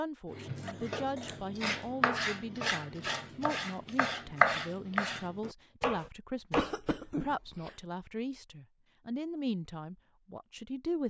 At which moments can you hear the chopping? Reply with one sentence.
You can hear the chopping from 0.3 to 6.8 s.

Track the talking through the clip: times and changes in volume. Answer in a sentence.
You can hear the talking from 0.0 to 11.0 s, at a steady volume.